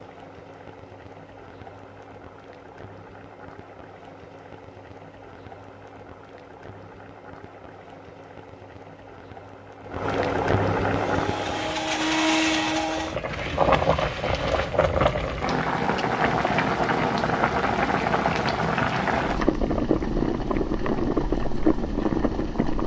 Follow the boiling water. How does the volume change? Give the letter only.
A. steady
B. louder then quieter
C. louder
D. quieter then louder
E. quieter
C.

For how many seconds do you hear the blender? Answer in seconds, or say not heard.
4 s.